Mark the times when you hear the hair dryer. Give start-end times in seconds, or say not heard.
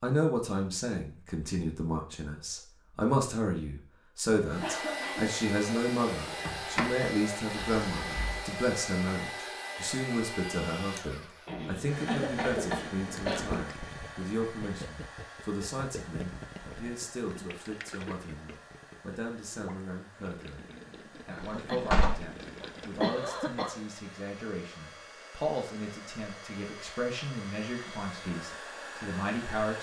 4.5-29.7.